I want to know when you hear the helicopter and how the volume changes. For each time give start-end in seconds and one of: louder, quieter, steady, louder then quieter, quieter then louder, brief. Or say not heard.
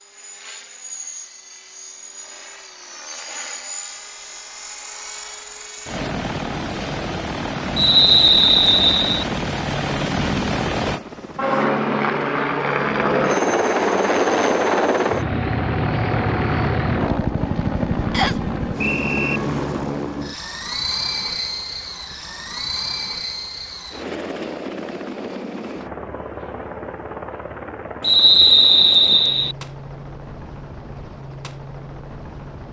0.0-32.6 louder then quieter.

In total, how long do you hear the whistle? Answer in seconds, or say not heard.
4 s.